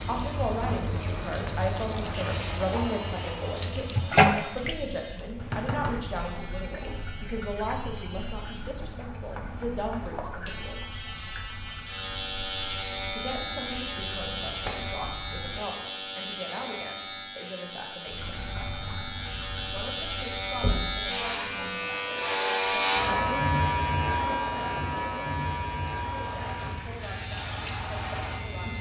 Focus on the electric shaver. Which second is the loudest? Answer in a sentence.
The loudest moment of the electric shaver is at 23 seconds.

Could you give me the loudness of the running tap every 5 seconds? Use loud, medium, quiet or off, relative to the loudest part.
loud, quiet, quiet, quiet, quiet, medium.